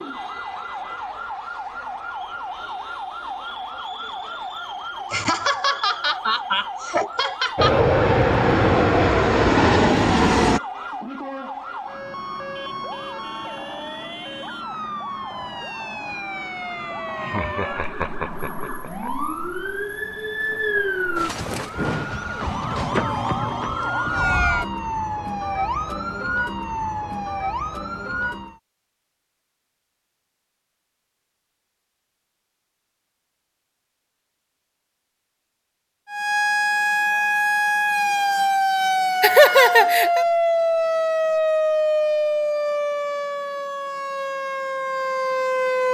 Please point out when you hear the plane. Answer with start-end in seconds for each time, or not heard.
7.5-10.6.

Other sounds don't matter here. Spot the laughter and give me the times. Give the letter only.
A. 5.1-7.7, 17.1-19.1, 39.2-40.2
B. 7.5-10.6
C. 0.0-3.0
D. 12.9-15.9
A.